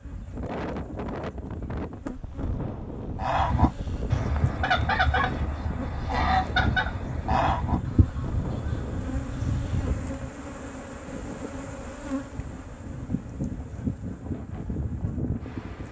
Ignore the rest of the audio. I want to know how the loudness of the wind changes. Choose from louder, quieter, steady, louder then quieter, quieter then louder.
quieter.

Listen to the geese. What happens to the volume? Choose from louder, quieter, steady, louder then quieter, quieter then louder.
quieter.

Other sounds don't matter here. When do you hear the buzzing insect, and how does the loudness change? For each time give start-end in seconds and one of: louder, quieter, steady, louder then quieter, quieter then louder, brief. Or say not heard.
0.0-15.8 louder.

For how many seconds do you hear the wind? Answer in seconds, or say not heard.
16 s.